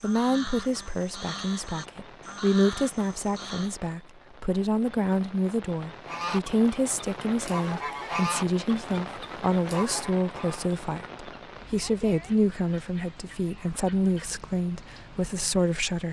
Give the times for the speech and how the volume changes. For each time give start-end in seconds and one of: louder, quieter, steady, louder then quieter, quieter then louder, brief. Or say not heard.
0.0-16.0 steady.